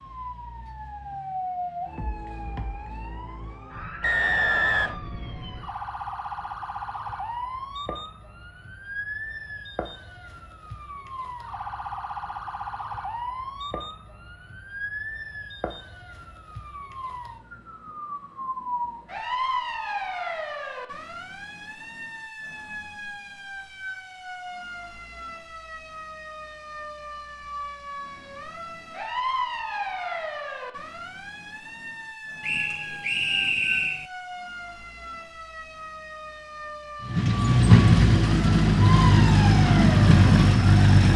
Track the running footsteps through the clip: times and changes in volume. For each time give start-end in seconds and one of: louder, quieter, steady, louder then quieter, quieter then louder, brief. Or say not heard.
not heard.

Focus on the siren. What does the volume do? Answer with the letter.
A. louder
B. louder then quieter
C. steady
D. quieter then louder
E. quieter
C.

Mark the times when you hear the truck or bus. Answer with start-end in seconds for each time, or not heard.
37.0-41.1.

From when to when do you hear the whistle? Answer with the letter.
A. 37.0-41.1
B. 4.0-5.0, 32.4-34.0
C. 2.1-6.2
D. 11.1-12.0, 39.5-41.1
B.